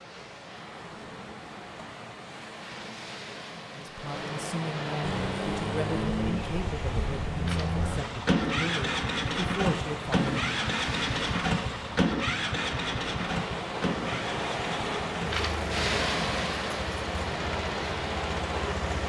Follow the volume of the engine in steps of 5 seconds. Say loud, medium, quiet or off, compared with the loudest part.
off, loud, loud, medium.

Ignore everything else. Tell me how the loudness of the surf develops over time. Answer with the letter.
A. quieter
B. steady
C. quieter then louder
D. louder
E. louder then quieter
D.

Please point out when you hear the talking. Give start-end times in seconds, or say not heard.
3.7-10.6.